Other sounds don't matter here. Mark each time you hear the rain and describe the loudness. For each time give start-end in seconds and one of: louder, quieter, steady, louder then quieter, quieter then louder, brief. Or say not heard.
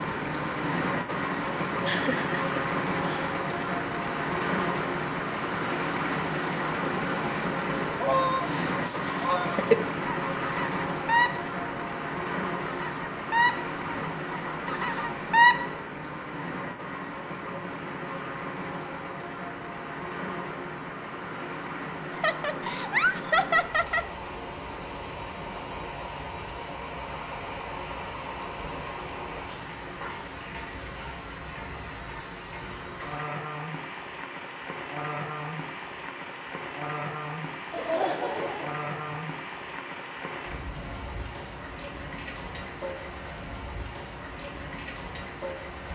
0.0-45.9 quieter.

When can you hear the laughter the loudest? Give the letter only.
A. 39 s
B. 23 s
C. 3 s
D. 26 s
B.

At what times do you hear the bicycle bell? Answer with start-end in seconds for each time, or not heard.
not heard.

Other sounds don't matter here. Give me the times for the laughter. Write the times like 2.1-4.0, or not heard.
1.9-3.4, 22.1-24.1, 37.7-39.1.